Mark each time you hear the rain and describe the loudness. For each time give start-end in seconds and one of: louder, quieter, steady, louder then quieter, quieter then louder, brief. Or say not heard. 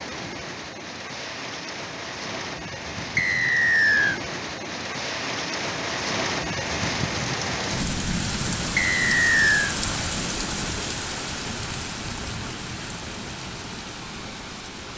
0.0-14.9 louder then quieter.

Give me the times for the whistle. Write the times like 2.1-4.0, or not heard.
3.1-4.2, 8.8-9.8.